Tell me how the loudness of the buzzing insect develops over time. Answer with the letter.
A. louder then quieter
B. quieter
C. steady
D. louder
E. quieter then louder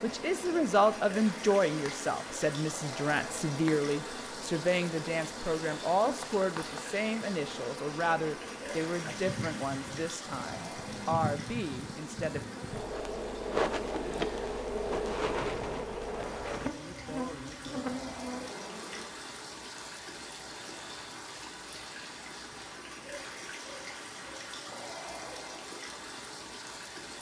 D.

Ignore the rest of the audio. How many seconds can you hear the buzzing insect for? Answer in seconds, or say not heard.
19 s.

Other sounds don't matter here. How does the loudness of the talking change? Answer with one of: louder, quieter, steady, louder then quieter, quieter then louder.
quieter.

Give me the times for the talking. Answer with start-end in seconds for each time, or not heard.
0.0-12.4.